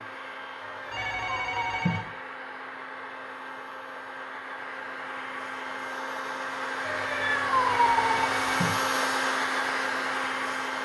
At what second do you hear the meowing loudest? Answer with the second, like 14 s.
8 s.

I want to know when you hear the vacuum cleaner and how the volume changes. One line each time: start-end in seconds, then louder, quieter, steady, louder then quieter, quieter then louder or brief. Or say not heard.
0.0-10.7 louder.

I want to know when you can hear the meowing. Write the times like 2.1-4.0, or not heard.
0.6-2.0, 6.8-8.3.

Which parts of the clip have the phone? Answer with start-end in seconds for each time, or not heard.
0.9-2.0, 7.7-8.8.